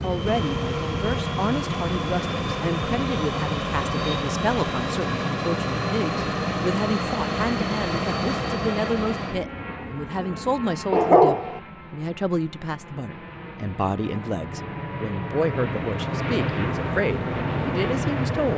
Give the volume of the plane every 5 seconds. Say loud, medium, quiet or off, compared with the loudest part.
loud, loud, medium, loud.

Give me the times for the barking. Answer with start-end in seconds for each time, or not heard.
10.9-11.6.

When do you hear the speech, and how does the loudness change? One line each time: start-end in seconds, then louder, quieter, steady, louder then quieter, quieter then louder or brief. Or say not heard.
0.0-18.5 steady.